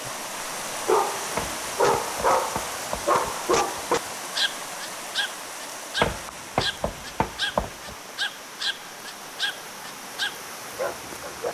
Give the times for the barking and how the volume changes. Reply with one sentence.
The barking can be heard from 0.8 to 11.4 s, getting quieter.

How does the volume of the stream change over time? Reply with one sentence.
The volume of the stream goes down.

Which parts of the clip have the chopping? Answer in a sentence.
The chopping can be heard from 1.4 to 4.1 s and from 6.0 to 8.0 s.